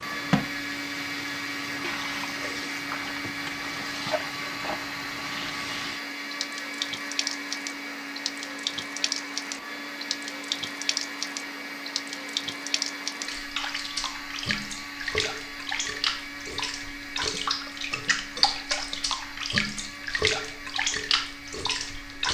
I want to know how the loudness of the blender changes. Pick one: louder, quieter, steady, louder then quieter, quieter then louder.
quieter.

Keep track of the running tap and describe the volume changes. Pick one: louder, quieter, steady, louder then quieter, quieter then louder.
louder.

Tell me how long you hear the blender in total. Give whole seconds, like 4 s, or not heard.
22 s.